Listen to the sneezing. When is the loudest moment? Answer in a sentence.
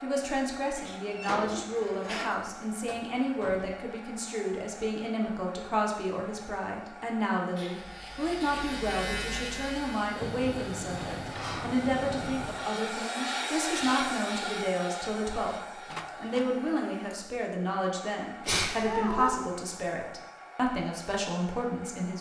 The volume of the sneezing peaks at 19 seconds.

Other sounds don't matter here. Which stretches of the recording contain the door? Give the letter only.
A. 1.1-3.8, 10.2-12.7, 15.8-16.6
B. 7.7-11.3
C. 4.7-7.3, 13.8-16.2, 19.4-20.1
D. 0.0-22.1
A.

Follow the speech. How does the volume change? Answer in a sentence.
The loudness of the speech stays about the same.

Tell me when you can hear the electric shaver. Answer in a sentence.
The electric shaver can be heard from 7.7 to 11.3 s.